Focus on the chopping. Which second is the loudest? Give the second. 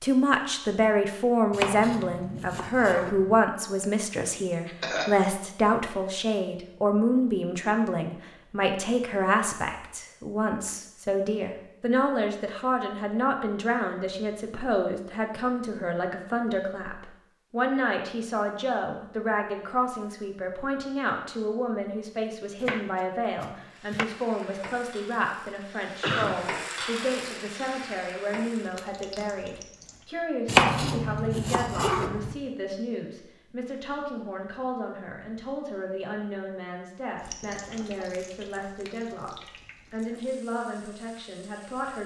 31 s.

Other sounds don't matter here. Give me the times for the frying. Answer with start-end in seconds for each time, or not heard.
23.7-30.1, 37.1-42.0.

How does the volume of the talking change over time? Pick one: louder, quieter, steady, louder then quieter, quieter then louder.
quieter.